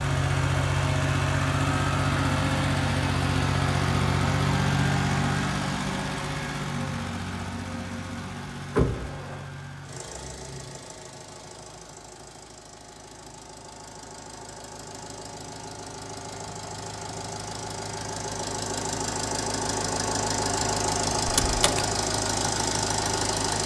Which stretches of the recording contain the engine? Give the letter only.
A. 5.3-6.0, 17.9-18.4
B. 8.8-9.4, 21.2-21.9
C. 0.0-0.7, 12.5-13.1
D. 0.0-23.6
D.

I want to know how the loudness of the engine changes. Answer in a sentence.
The loudness of the engine goes down, then up.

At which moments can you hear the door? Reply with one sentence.
The door can be heard from 8.8 to 9.4 s and from 21.2 to 21.9 s.